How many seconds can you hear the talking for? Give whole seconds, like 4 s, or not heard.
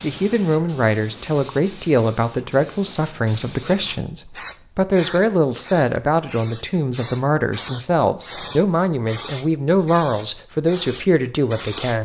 12 s.